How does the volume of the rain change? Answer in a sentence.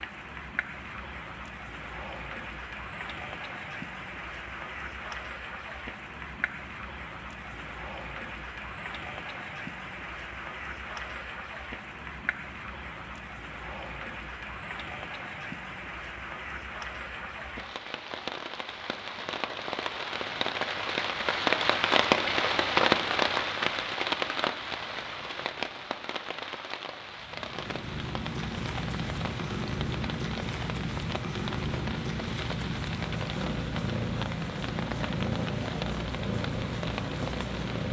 The loudness of the rain goes up, then down.